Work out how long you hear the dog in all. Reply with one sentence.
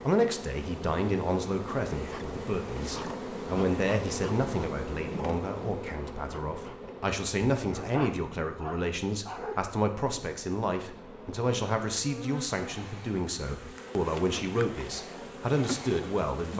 You can hear the dog for 2 seconds altogether.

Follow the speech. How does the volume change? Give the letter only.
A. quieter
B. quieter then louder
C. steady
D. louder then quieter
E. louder
C.